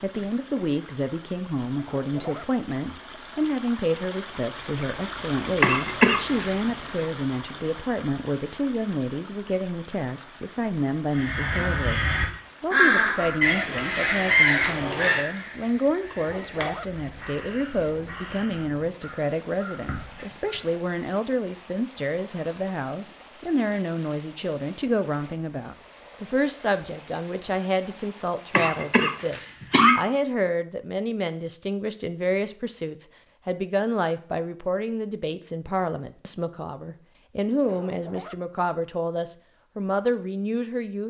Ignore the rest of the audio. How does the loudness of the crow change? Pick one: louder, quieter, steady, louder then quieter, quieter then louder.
quieter.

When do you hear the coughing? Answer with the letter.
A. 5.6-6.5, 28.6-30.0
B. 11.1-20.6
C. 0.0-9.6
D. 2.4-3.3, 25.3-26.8
A.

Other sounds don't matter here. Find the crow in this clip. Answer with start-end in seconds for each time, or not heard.
11.1-20.6.